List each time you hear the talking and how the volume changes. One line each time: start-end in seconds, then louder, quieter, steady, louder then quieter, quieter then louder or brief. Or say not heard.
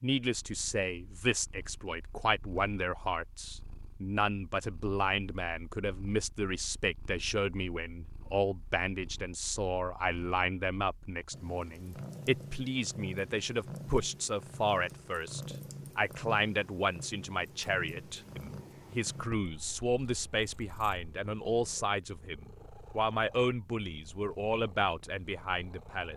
0.0-26.1 steady.